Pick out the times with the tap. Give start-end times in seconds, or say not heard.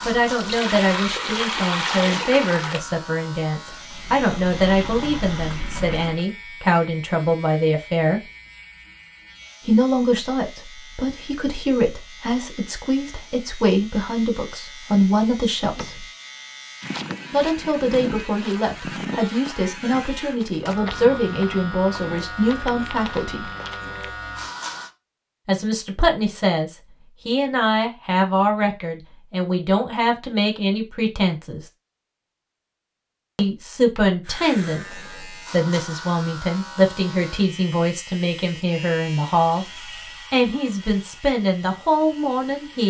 0.2-6.2.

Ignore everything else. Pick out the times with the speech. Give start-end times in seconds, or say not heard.
0.1-8.2, 9.7-16.1, 17.3-23.5, 25.4-31.6, 33.4-42.8.